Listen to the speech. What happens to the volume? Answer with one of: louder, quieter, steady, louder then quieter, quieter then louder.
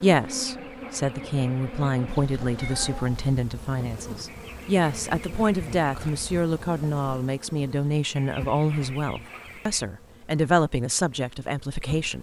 steady.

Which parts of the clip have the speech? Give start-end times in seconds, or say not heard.
0.0-12.1.